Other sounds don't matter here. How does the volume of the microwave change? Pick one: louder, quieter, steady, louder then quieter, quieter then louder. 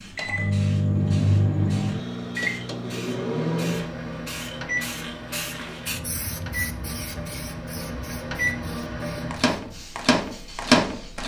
quieter then louder.